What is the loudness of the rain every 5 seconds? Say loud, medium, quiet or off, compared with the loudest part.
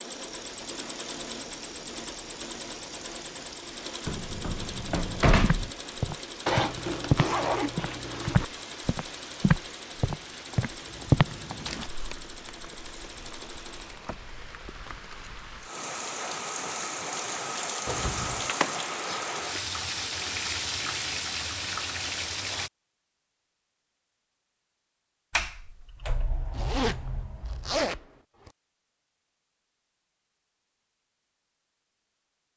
quiet, quiet, quiet, loud, loud, off, off.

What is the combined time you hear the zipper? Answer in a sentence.
The zipper can be heard for 5 seconds in total.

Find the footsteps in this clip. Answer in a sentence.
You can hear the footsteps from 5.4 to 11.8 s.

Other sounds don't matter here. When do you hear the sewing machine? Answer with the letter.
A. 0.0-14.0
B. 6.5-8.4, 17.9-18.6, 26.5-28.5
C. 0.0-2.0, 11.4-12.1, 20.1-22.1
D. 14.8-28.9
A.